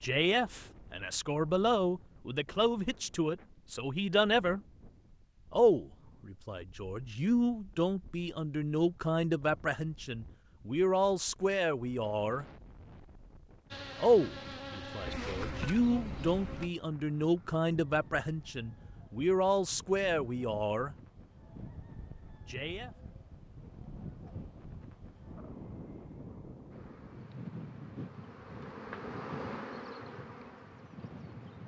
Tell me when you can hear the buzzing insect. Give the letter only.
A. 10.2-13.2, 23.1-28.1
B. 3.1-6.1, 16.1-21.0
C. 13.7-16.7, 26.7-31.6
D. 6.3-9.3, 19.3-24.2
C.